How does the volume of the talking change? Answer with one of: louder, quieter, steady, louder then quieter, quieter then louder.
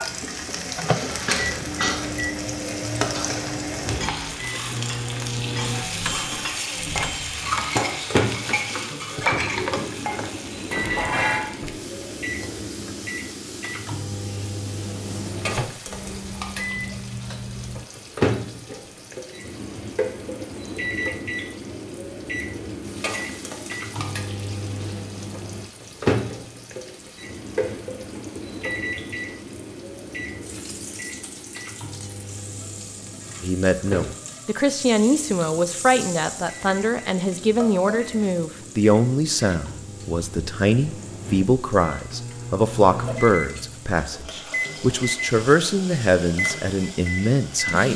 steady.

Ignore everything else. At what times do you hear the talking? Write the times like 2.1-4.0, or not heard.
33.4-47.9.